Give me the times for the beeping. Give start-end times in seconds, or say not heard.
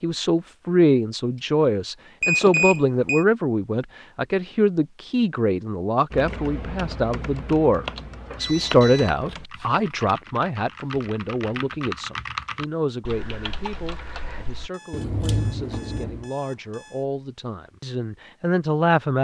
2.2-3.2, 8.4-9.2, 14.7-17.1.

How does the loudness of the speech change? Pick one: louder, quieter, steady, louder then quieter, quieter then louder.
quieter.